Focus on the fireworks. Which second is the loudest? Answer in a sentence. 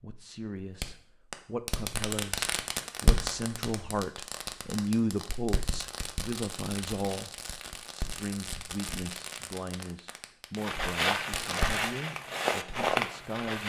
The loudest moment of the fireworks is at 3 seconds.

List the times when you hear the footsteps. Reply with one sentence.
The footsteps can be heard from 10.6 to 13.6 s.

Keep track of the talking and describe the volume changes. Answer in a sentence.
The loudness of the talking goes up, then down.